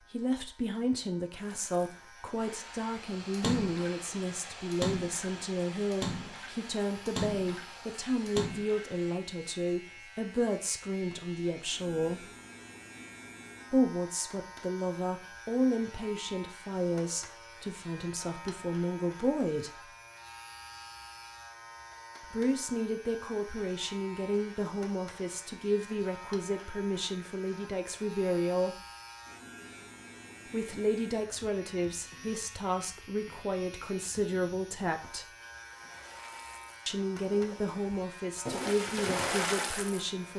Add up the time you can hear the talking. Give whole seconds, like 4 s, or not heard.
33 s.